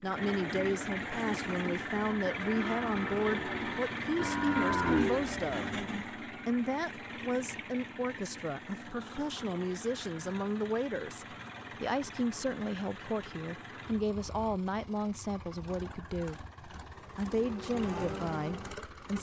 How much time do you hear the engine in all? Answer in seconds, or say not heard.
19 s.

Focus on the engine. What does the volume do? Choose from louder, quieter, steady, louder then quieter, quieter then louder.
quieter.